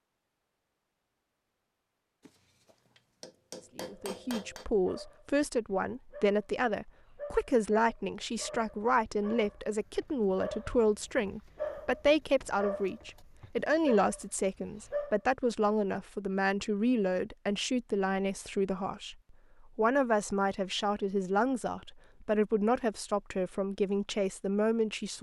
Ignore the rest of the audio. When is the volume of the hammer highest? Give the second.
4 s.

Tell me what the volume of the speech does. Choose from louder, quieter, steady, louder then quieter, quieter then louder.
steady.